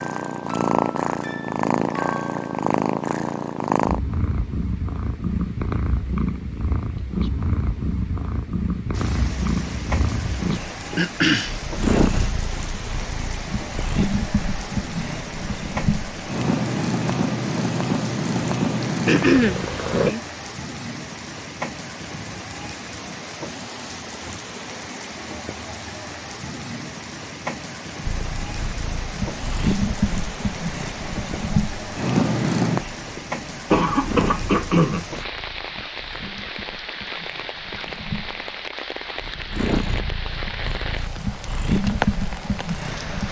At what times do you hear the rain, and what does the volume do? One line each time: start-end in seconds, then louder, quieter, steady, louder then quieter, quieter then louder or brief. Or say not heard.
8.9-43.2 steady.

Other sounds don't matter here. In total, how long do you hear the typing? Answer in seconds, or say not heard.
not heard.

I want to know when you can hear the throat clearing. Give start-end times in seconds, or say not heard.
10.9-11.6, 18.8-20.2, 33.7-35.0.